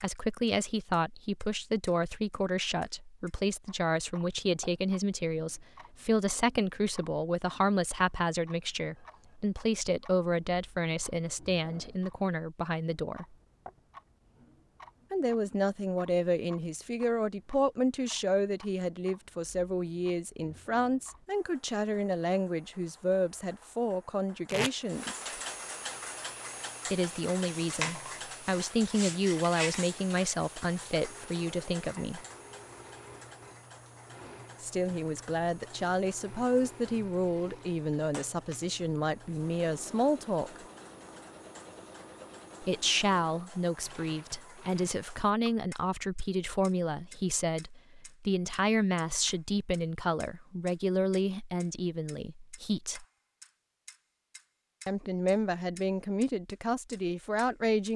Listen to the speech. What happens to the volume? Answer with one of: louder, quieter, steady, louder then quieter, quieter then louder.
steady.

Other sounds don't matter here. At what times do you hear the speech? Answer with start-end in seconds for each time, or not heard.
0.0-13.3, 15.1-25.2, 26.9-32.2, 34.6-40.6, 42.6-53.0, 54.9-57.9.